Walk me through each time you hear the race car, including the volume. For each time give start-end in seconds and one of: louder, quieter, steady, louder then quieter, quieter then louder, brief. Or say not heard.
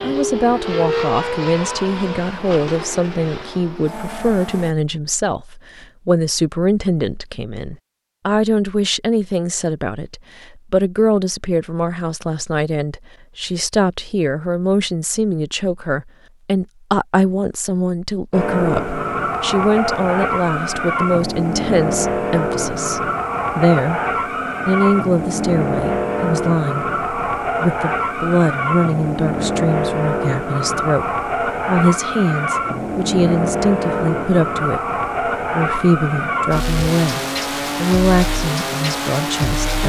0.0-4.8 quieter
18.3-39.8 steady.